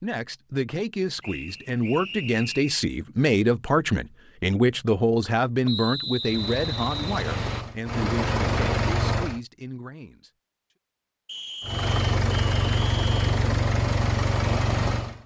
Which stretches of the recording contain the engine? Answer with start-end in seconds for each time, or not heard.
6.2-9.4, 11.6-15.2.